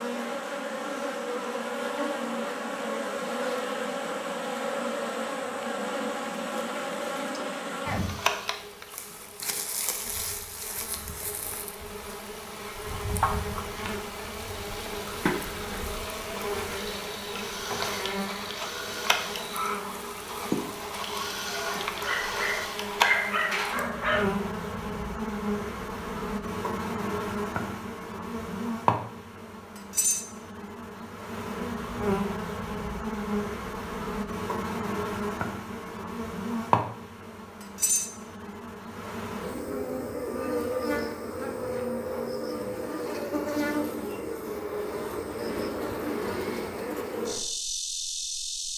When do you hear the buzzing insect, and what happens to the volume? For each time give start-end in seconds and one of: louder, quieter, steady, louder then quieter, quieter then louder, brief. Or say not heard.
0.0-48.7 steady.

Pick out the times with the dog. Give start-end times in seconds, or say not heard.
21.9-24.2.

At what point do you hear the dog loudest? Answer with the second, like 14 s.
23 s.